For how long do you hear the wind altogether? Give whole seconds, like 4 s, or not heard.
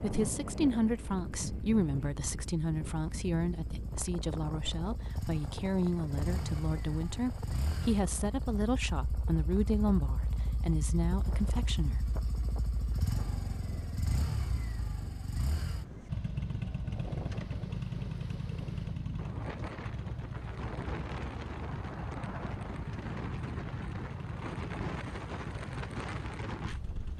27 s.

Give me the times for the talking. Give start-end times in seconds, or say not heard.
0.0-12.1.